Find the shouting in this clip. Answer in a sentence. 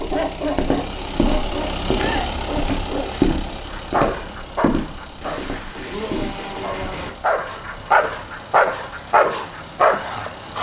You can hear the shouting from 1.9 to 2.4 s and from 5.8 to 7.2 s.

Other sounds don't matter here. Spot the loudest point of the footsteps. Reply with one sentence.
The loudest moment of the footsteps is at 3 seconds.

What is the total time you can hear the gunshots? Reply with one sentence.
You can hear the gunshots for 2 seconds altogether.